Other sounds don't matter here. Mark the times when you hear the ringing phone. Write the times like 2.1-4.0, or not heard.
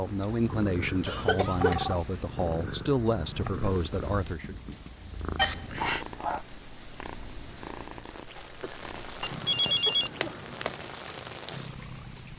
1.0-2.0, 5.3-6.0, 9.2-10.8.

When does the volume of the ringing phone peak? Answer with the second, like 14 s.
10 s.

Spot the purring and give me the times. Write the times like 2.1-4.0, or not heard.
0.0-12.3.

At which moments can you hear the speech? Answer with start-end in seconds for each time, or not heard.
0.0-4.5.